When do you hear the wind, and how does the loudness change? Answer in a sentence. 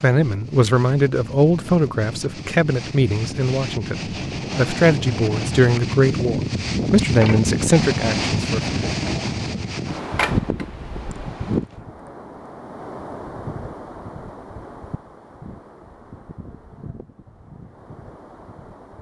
The wind can be heard from 0.0 to 18.9 s, getting louder then quieter.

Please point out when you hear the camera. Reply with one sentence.
The camera can be heard from 10.2 to 11.2 s.